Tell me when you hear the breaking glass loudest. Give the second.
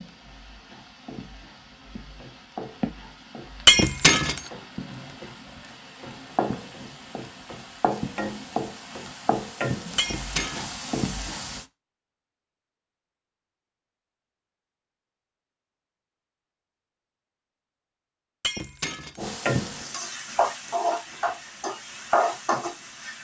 4 s.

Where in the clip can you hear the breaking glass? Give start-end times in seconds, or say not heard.
3.6-4.4, 9.9-10.7, 18.4-19.2.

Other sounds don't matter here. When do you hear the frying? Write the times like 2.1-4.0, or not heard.
0.0-11.7, 19.1-23.1.